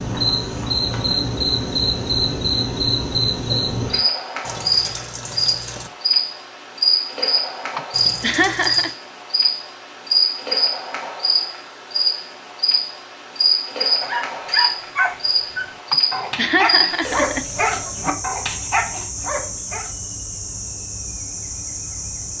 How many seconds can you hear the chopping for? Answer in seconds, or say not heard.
not heard.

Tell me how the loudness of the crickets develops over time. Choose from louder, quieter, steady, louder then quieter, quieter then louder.
quieter.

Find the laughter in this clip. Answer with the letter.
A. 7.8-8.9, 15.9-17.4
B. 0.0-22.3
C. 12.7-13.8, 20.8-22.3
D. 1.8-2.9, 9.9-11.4
A.